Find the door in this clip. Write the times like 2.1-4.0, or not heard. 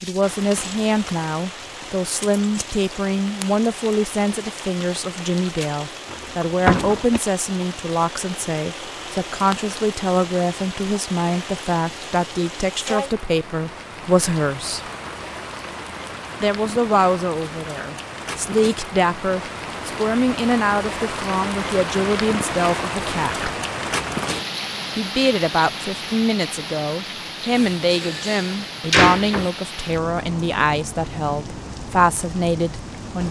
6.1-7.1, 27.6-29.5.